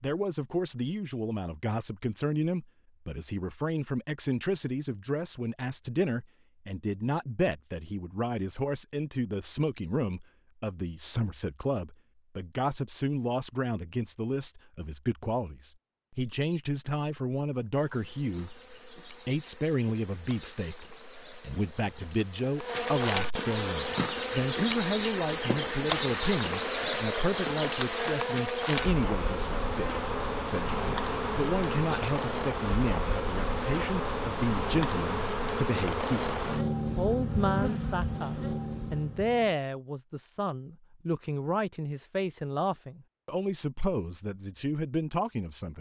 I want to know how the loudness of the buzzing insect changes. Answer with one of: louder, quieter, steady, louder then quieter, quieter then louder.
louder.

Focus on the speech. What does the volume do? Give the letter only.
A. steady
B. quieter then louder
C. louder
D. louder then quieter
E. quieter
A.